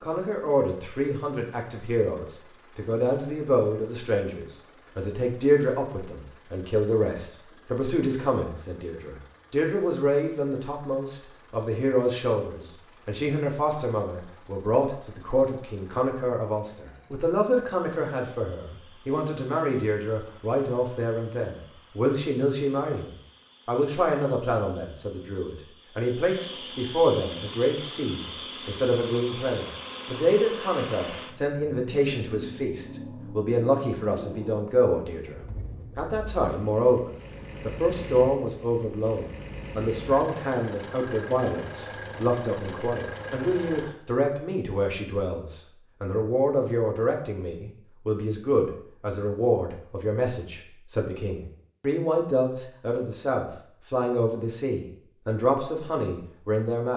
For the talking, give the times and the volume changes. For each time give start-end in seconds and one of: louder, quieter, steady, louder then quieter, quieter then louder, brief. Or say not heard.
0.0-56.9 steady.